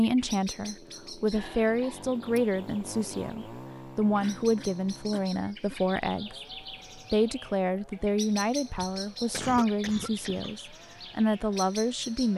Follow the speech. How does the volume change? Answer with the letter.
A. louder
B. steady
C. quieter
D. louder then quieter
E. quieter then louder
B.